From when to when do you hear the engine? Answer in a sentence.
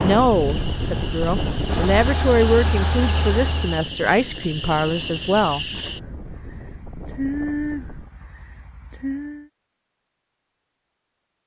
You can hear the engine from 0.2 to 3.9 s.